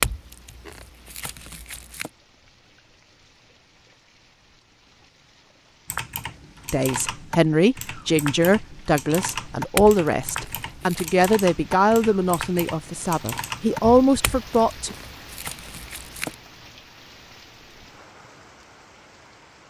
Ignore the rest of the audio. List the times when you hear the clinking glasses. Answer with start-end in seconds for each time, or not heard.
0.0-2.1, 9.8-11.1, 14.2-16.4.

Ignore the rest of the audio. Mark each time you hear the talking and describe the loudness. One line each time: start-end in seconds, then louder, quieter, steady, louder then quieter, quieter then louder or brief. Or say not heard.
6.7-14.9 steady.